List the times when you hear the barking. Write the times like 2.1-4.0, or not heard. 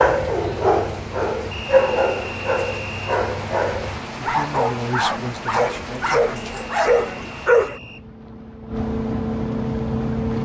0.0-7.8.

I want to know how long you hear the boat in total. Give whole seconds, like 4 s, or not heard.
10 s.